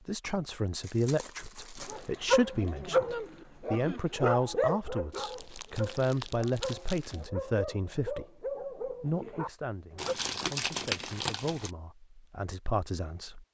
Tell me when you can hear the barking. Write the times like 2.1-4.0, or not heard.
1.8-10.2.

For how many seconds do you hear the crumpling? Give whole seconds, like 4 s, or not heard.
5 s.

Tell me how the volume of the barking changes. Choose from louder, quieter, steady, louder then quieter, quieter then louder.
quieter.